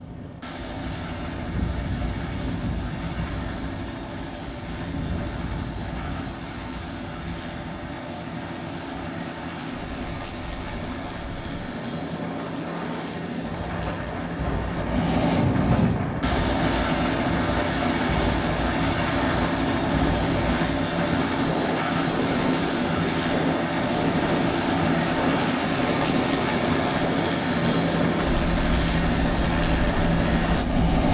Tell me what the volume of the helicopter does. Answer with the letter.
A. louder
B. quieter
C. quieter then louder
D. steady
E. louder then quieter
A.